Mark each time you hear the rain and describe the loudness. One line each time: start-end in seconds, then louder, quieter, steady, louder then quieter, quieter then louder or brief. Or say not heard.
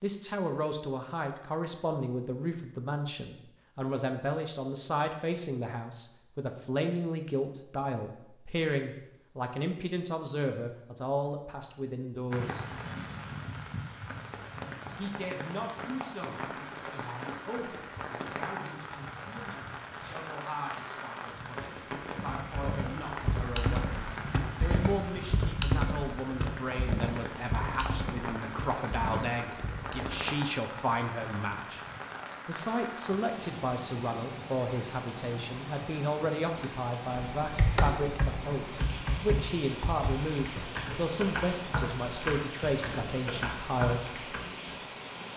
12.3-45.3 steady.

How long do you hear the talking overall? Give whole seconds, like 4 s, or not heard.
41 s.